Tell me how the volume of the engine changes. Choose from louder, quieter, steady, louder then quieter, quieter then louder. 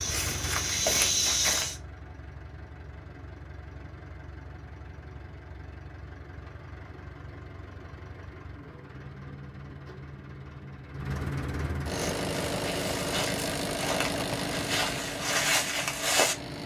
louder.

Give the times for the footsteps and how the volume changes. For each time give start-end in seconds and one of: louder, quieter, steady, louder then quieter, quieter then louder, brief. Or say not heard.
0.0-1.8 brief
11.9-16.6 louder.